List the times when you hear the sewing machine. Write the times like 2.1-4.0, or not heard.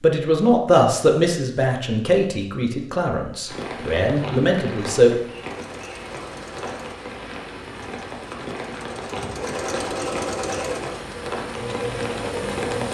5.4-12.8.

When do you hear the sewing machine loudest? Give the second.
10 s.